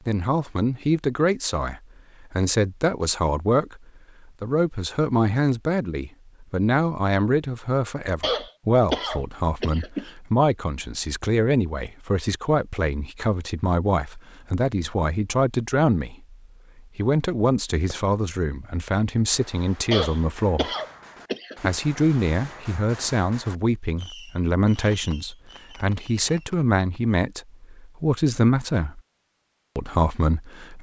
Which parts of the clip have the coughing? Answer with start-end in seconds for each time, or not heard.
8.2-10.1, 19.9-21.8.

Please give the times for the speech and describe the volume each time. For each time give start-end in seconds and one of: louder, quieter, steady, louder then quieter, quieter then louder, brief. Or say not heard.
0.1-20.7 steady
21.6-29.0 steady
29.8-30.7 brief.